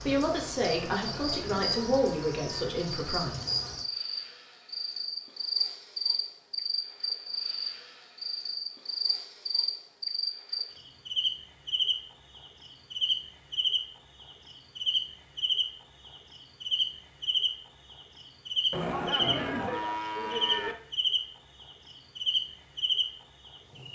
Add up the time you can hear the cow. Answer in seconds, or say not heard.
4 s.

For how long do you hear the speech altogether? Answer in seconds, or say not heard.
3 s.